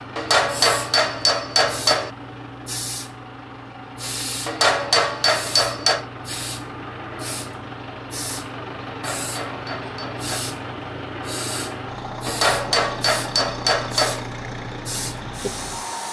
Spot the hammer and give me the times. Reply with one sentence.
You can hear the hammer from 0.1 to 2.1 s, from 4.5 to 6.0 s, from 8.8 to 10.4 s and from 12.2 to 14.2 s.